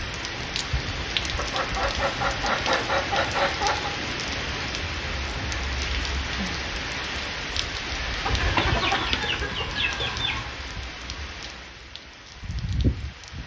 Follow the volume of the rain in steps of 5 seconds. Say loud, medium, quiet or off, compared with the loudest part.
loud, loud, medium.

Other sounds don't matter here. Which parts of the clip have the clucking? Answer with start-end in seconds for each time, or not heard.
1.4-4.0, 8.2-10.6.